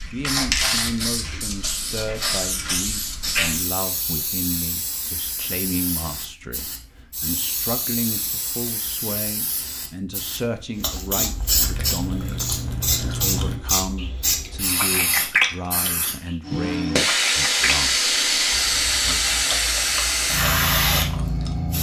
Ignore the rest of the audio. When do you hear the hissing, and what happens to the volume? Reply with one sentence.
The hissing can be heard from 0.0 to 21.7 s, getting quieter then louder.